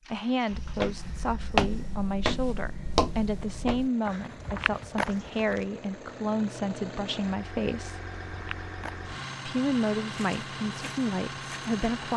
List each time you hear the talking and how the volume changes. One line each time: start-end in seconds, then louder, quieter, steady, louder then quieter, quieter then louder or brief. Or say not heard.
0.1-8.1 steady
9.4-12.1 brief.